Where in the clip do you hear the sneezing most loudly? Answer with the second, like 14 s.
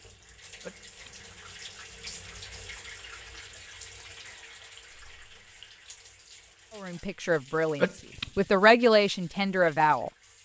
8 s.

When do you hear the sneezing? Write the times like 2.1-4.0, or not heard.
0.6-1.2, 7.8-8.4.